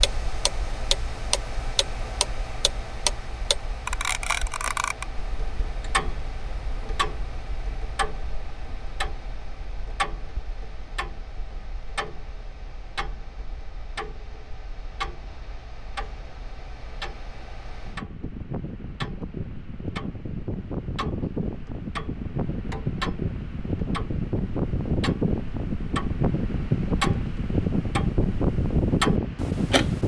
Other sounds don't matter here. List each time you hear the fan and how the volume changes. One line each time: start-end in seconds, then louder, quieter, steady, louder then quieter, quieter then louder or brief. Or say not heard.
0.0-30.0 quieter then louder.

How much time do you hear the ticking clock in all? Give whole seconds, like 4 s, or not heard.
30 s.